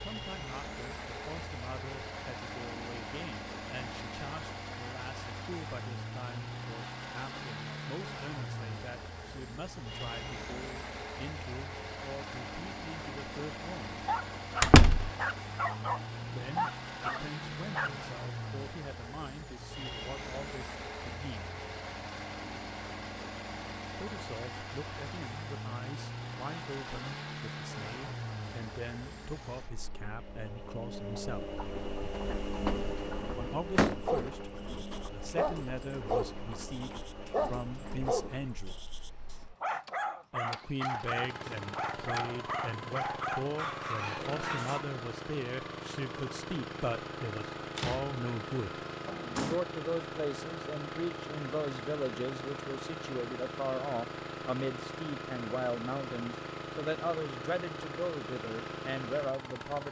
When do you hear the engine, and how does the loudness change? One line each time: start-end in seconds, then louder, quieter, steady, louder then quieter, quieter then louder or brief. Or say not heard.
0.0-59.8 steady.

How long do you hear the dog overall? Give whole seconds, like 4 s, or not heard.
15 s.